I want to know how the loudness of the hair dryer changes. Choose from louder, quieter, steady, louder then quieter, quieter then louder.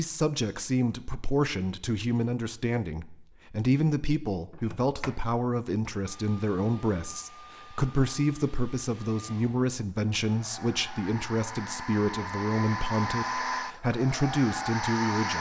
louder.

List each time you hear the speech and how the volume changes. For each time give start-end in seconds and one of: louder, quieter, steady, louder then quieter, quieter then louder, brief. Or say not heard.
0.0-15.3 steady.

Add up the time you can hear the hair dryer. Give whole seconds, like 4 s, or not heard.
9 s.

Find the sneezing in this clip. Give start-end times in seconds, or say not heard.
not heard.